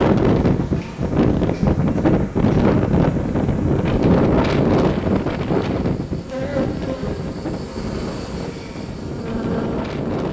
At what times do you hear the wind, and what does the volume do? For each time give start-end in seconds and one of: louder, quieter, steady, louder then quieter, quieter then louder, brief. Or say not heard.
0.0-10.2 quieter.